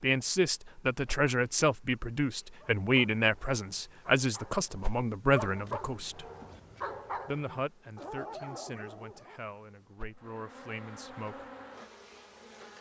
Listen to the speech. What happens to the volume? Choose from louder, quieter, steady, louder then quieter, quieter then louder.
quieter.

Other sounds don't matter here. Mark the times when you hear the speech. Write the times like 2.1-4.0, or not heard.
0.0-6.2, 7.2-11.4.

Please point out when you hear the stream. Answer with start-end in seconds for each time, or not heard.
not heard.